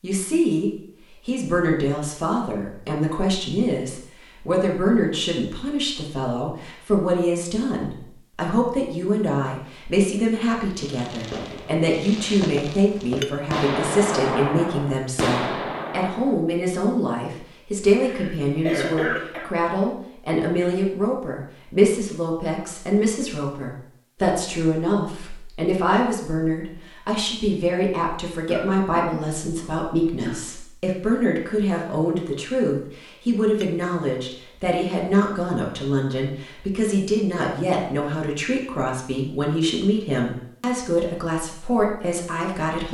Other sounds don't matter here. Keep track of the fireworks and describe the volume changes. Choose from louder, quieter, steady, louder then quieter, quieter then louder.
louder.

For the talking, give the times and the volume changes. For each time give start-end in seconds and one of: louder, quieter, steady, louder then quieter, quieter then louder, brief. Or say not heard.
0.0-42.8 steady.